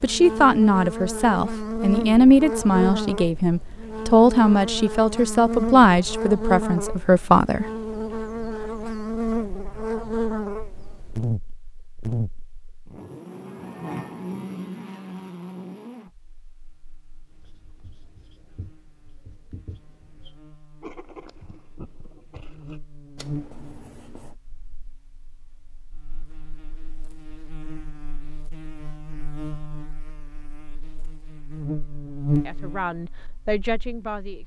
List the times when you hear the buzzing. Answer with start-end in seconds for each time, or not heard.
0.0-34.4.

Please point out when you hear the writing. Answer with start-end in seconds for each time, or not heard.
17.3-24.4.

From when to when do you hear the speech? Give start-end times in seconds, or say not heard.
0.0-7.7, 32.5-34.4.